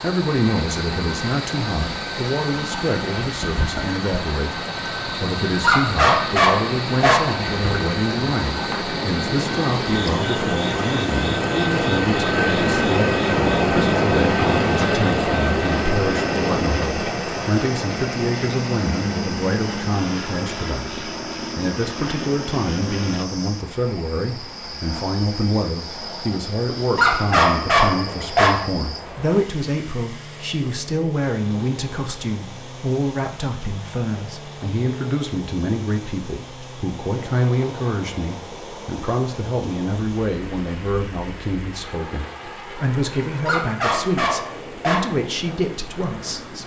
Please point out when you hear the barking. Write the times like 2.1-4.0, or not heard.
5.6-7.3, 26.9-28.6, 43.5-45.1.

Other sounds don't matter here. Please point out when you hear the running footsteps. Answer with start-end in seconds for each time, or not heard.
not heard.